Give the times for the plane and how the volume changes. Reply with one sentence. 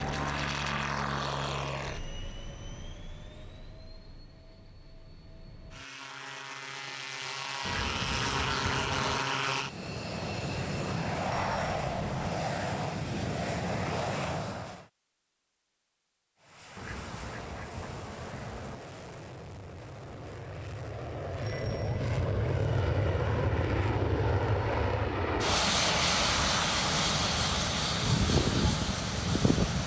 You can hear the plane from 0.0 to 14.8 s, getting quieter then louder; and from 16.4 to 29.8 s, getting louder.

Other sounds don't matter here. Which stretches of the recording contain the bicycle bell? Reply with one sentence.
You can hear the bicycle bell from 11.2 to 12.2 s and from 21.4 to 22.4 s.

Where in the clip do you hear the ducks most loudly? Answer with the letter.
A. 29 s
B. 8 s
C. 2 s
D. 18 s
B.